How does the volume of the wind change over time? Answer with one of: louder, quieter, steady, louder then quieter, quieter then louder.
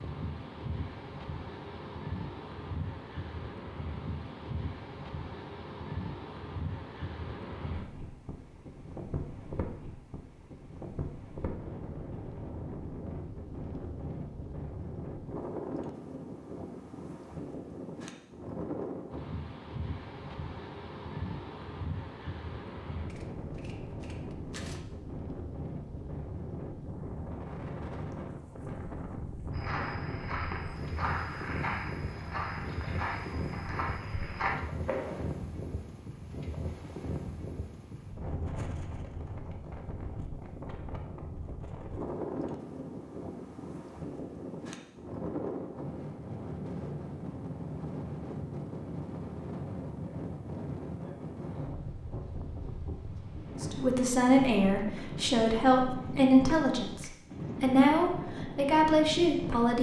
steady.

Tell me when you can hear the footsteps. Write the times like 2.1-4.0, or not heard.
29.5-35.2.